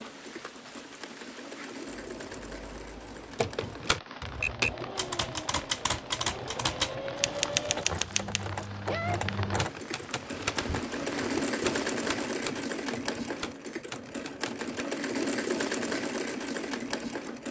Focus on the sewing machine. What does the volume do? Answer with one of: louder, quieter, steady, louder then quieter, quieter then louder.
louder.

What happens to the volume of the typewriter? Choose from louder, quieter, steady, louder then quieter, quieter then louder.
quieter.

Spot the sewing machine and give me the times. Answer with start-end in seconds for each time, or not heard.
0.0-17.4.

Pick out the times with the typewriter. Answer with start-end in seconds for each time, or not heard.
3.4-14.8.